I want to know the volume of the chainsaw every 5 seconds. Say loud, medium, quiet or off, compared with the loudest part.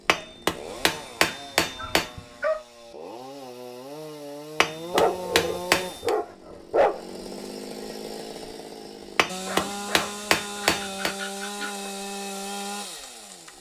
medium, loud, loud.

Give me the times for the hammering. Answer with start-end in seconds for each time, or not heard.
0.1-2.1, 4.6-6.1, 9.2-11.2.